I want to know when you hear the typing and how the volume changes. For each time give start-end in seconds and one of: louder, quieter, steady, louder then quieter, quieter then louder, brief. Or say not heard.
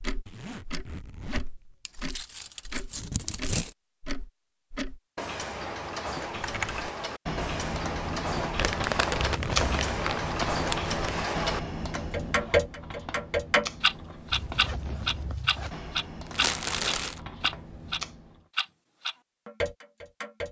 6.2-18.4 quieter.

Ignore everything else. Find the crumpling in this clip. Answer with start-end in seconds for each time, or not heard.
1.9-3.8, 8.6-11.0, 16.3-17.2.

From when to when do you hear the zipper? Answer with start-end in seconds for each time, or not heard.
0.2-1.8, 9.2-10.0, 14.3-15.8.